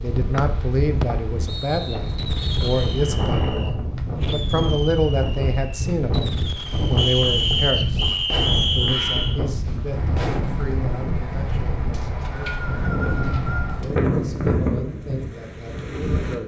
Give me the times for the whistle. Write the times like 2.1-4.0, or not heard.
0.3-3.0, 7.0-9.4, 11.9-13.8.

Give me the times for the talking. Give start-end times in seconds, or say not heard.
0.0-8.1, 8.8-12.7, 13.8-16.4.